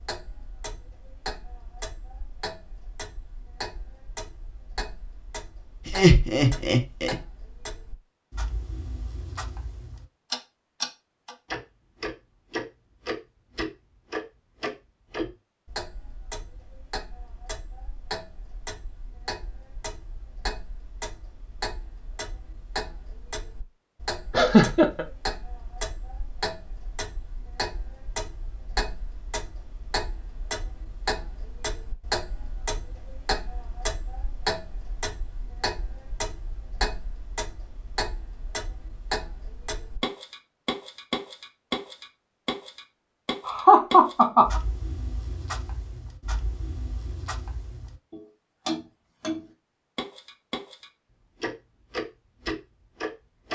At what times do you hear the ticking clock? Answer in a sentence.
The ticking clock can be heard from 0.0 to 53.5 s.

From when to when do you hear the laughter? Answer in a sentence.
You can hear the laughter from 5.8 to 7.2 s, from 24.3 to 25.1 s and from 43.5 to 44.6 s.